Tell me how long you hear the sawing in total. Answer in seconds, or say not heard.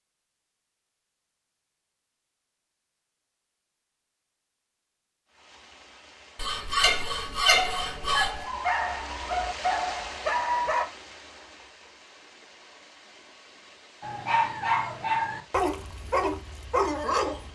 2 s.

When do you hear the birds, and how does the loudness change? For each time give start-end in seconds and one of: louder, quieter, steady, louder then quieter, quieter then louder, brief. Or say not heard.
not heard.